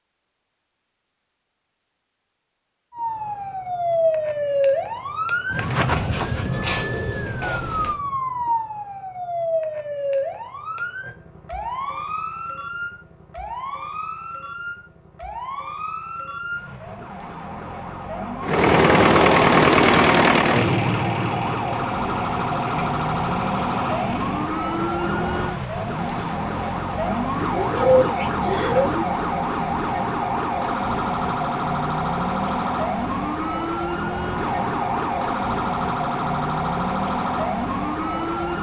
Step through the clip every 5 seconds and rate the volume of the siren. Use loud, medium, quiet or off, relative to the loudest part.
loud, loud, medium, medium, loud, loud, loud, loud.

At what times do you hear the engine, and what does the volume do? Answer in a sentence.
You can hear the engine from 18.4 to 26.2 s, getting quieter.